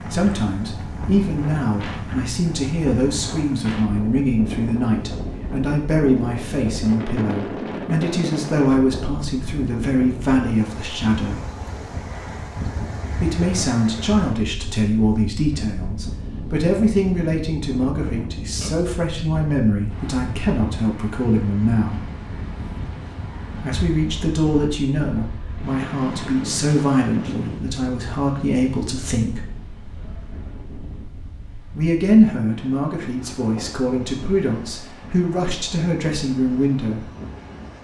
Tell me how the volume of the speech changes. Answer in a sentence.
The loudness of the speech stays about the same.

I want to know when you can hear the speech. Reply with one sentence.
You can hear the speech from 0.1 to 11.4 s, from 13.1 to 22.0 s, from 23.6 to 29.5 s and from 31.8 to 37.0 s.